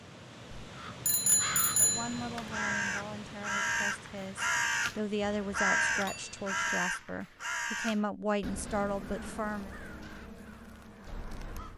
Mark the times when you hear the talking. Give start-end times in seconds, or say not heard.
1.8-9.8.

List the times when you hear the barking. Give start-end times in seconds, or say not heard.
not heard.